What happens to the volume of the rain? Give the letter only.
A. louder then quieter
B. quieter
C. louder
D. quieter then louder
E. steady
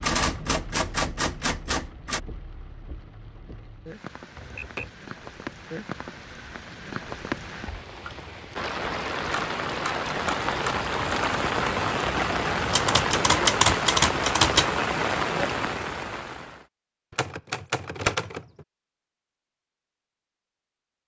C.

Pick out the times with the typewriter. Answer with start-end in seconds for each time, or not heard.
0.0-2.2, 4.3-4.9, 9.3-10.8, 12.7-14.7, 17.1-18.6.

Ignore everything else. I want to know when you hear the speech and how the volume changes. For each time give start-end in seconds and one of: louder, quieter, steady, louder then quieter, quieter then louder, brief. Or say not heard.
not heard.